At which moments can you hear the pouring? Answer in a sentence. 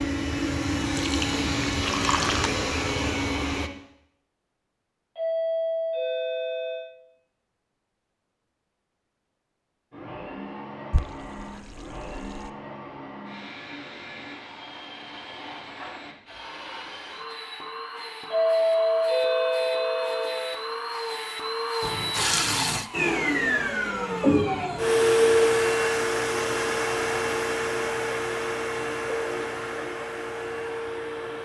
You can hear the pouring from 0.9 to 2.5 s, from 10.9 to 12.5 s and from 21.8 to 22.9 s.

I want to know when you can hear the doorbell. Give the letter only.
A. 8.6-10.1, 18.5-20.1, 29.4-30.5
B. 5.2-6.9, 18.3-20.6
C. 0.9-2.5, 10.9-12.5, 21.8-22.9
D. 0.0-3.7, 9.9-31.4
B.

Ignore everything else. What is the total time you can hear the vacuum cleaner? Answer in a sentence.
You can hear the vacuum cleaner for 25 seconds altogether.